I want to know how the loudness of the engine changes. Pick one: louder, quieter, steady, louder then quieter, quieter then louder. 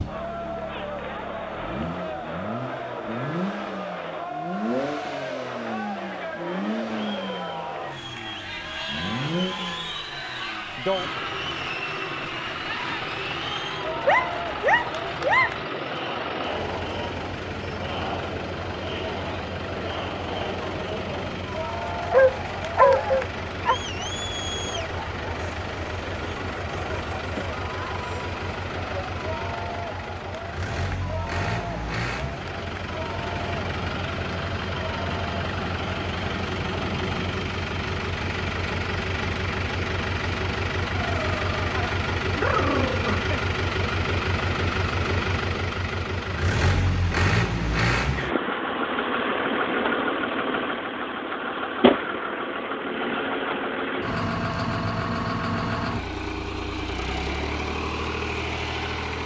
louder.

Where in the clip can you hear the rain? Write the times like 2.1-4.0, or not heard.
not heard.